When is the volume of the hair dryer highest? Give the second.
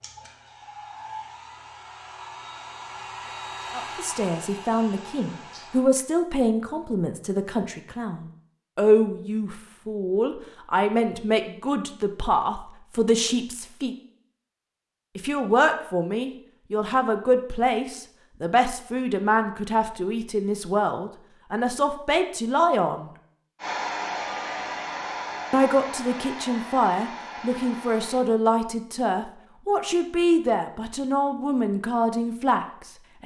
24 s.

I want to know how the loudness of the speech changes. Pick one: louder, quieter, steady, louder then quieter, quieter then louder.
steady.